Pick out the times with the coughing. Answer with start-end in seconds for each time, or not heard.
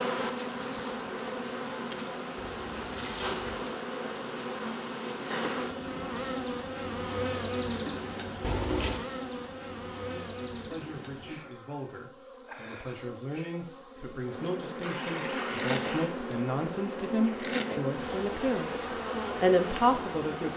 not heard.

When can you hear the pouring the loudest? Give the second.
9 s.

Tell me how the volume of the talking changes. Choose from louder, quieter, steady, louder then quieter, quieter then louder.
louder.